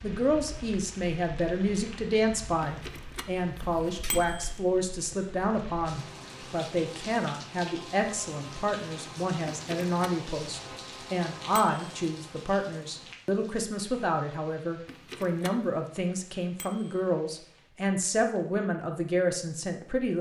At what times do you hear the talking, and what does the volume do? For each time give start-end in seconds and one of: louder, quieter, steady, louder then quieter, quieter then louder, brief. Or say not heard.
0.0-20.1 steady.